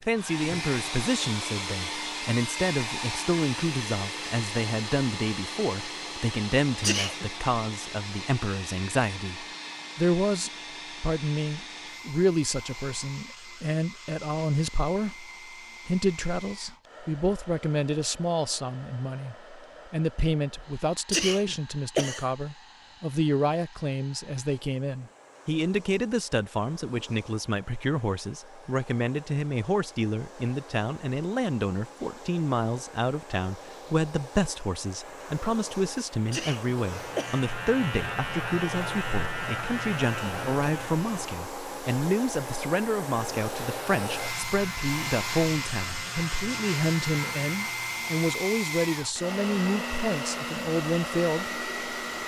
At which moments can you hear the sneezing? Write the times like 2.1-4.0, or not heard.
6.8-7.3, 21.1-22.2, 36.3-37.5.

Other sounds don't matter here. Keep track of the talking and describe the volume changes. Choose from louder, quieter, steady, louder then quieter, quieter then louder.
steady.